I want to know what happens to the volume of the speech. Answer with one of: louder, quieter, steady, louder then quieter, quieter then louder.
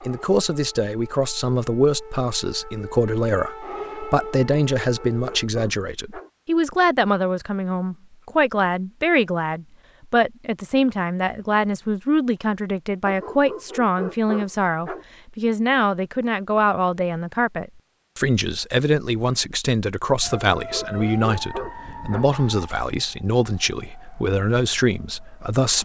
steady.